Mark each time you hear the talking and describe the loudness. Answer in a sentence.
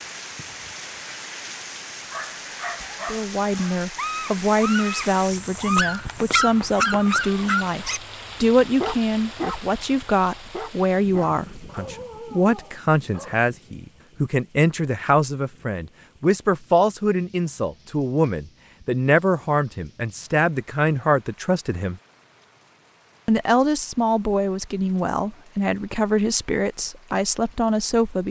The talking can be heard from 3.1 to 22.0 s, at a steady volume; and from 23.2 to 28.2 s, at a steady volume.